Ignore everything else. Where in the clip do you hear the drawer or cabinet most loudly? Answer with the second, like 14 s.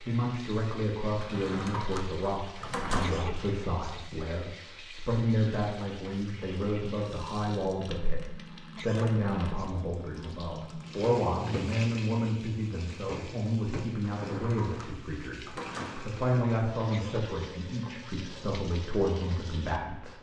3 s.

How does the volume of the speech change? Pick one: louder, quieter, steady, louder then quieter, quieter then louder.
steady.